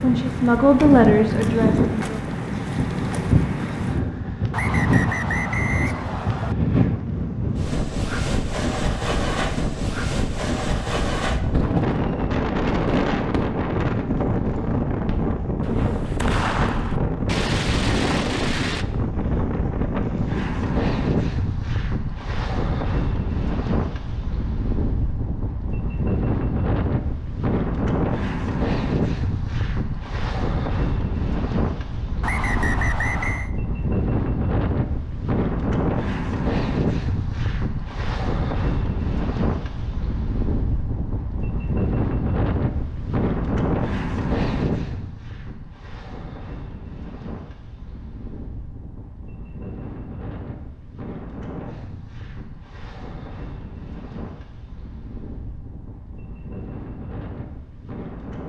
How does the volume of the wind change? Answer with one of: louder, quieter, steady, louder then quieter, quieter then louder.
quieter.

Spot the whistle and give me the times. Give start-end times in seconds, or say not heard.
4.5-6.5, 32.2-33.5.